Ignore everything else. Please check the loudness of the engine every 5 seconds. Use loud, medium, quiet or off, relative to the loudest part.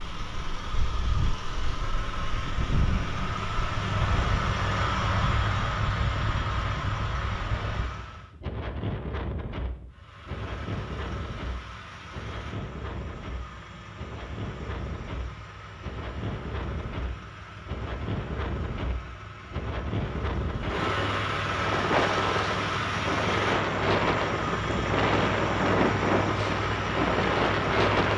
loud, loud, quiet, quiet, loud, loud.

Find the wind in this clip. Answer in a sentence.
You can hear the wind from 0.0 to 28.1 s.